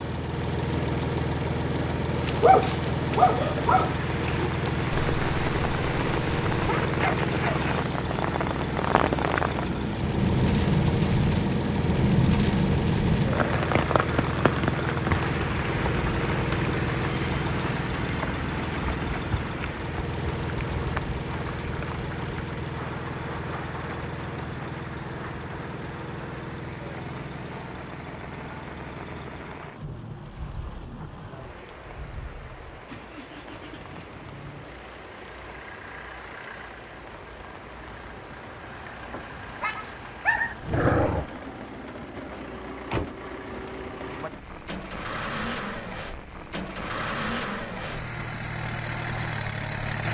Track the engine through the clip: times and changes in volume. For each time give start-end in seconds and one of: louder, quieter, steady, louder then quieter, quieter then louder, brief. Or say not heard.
0.0-50.1 quieter then louder.